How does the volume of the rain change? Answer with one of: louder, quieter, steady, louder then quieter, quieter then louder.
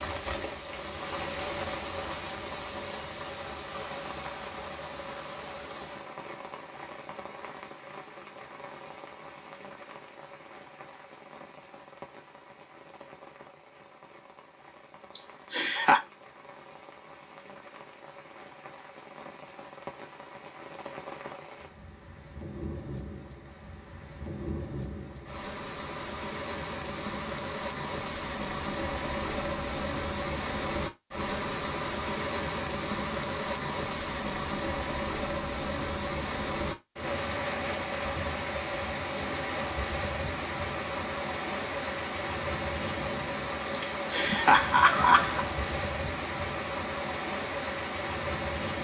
quieter then louder.